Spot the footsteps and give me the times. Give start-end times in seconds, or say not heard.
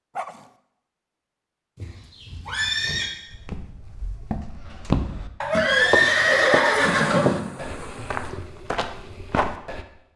3.3-5.3, 5.9-9.8.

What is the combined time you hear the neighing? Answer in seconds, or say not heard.
3 s.